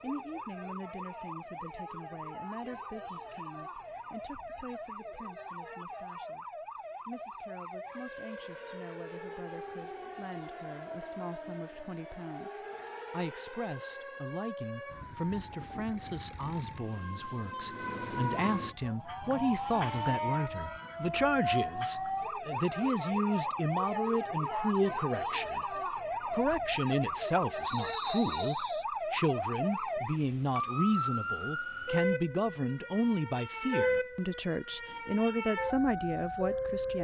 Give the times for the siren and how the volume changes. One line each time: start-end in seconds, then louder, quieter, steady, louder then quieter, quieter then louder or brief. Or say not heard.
0.0-36.9 louder.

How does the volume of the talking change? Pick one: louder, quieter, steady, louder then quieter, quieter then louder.
louder.